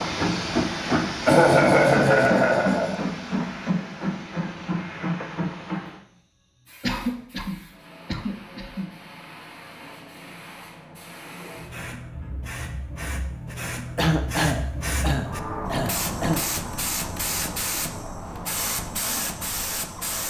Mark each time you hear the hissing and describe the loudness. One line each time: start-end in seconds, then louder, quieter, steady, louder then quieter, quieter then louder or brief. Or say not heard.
0.0-20.2 quieter then louder.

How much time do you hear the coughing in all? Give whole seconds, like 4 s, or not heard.
6 s.